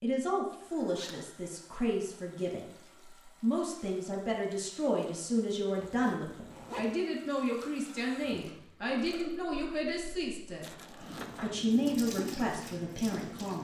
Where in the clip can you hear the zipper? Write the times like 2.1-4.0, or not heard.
0.5-1.2, 5.8-6.9, 10.6-11.6.